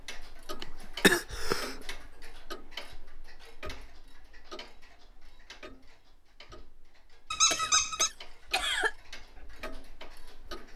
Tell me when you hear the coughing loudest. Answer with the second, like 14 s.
1 s.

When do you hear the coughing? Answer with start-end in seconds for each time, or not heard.
0.6-1.8, 7.5-8.9.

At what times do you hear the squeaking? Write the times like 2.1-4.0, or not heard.
7.3-8.1.